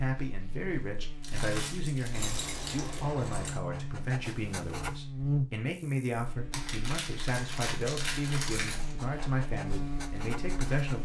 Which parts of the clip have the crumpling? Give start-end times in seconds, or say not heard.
1.2-3.0, 6.5-8.7.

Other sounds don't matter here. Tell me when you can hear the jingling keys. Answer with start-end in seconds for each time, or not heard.
2.1-3.5, 7.3-8.9.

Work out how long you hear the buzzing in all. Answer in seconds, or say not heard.
11 s.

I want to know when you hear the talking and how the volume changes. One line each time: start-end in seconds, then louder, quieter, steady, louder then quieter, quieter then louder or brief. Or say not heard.
0.0-10.9 steady.